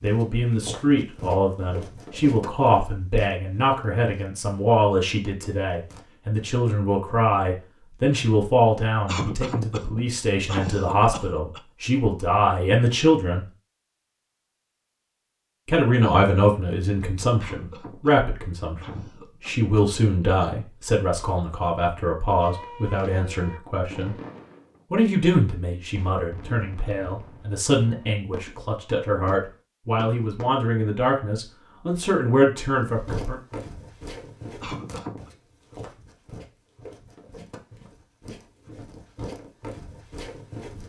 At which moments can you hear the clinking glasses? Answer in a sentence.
The clinking glasses can't be heard in this clip.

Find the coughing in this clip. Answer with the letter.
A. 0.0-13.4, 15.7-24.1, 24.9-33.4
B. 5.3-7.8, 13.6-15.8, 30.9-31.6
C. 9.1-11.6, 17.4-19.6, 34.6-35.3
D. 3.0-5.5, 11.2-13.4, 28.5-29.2
C.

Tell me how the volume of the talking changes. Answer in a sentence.
The loudness of the talking stays about the same.